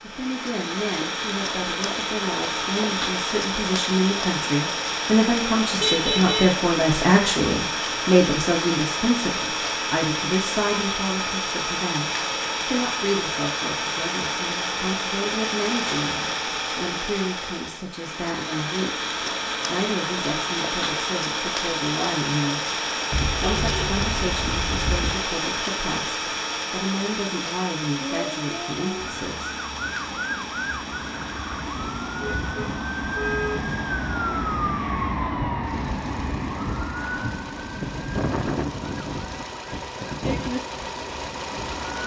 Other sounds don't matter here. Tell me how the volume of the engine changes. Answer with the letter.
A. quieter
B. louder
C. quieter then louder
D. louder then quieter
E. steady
A.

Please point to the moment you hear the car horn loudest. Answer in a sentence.
The loudest moment of the car horn is at 6 seconds.